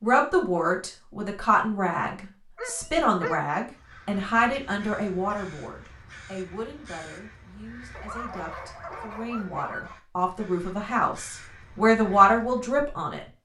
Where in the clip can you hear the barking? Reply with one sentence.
You can hear the barking from 2.5 to 3.5 s and from 8.0 to 9.9 s.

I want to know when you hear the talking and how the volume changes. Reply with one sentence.
You can hear the talking from 0.0 to 13.2 s, getting quieter then louder.